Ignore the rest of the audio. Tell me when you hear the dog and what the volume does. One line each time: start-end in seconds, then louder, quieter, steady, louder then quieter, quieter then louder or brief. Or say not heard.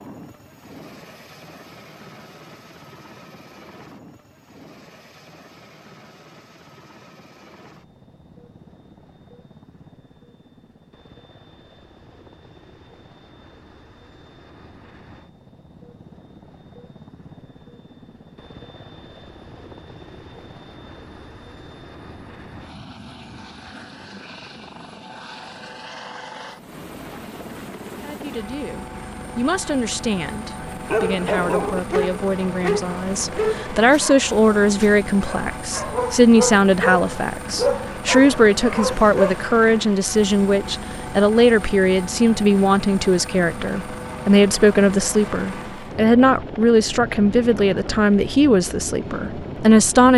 30.9-39.4 quieter then louder.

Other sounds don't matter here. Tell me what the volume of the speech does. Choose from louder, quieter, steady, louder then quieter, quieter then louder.
louder.